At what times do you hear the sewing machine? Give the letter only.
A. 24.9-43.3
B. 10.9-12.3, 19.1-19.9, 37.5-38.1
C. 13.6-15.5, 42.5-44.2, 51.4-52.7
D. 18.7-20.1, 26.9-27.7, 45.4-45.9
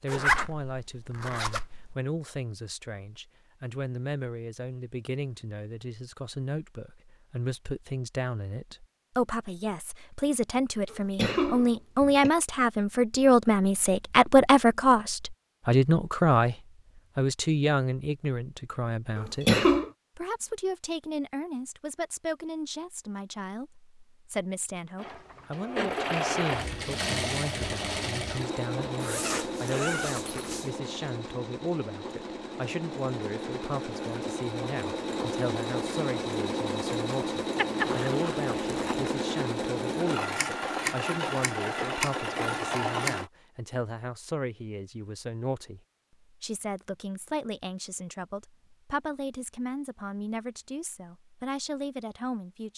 A.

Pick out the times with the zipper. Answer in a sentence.
The zipper can be heard from 0.1 to 1.9 s, from 29.0 to 30.7 s and from 37.8 to 39.1 s.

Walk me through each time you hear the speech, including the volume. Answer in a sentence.
The speech can be heard from 0.0 to 52.7 s, getting louder then quieter.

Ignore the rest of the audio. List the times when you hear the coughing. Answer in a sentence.
You can hear the coughing from 10.9 to 12.3 s, from 19.1 to 19.9 s and from 37.5 to 38.1 s.